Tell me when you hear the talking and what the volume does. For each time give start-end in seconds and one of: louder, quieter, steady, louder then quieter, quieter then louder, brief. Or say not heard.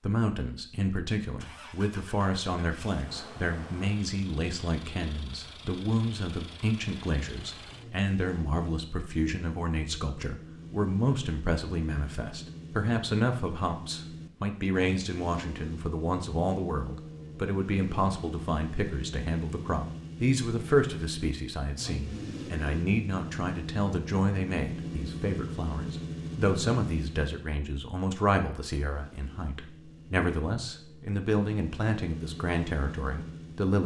0.0-33.8 steady.